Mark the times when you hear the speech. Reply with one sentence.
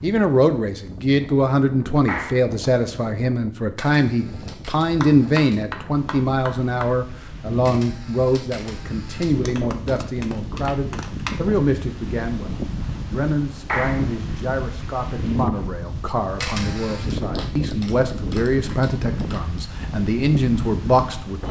You can hear the speech from 0.0 to 21.4 s.